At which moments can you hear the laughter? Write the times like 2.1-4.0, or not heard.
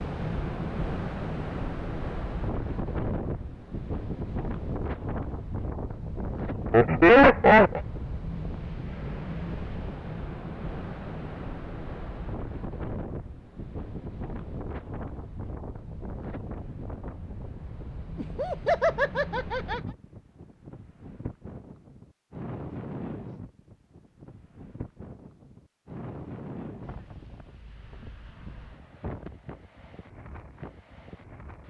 6.7-7.8, 18.1-19.8.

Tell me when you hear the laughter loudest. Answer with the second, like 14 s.
7 s.